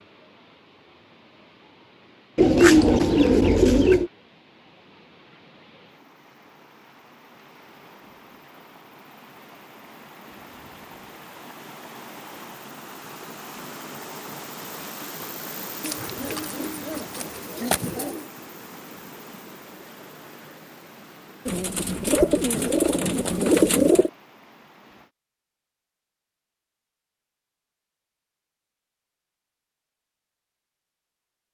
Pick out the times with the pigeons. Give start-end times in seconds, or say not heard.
2.4-4.1, 15.8-18.2, 21.4-24.1.